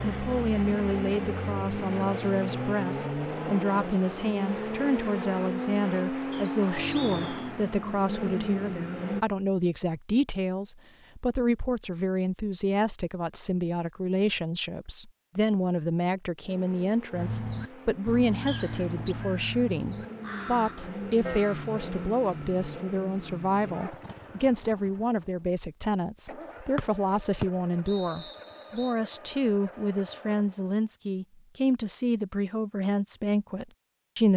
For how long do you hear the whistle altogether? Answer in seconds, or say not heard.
4 s.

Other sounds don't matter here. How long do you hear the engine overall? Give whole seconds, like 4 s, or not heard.
24 s.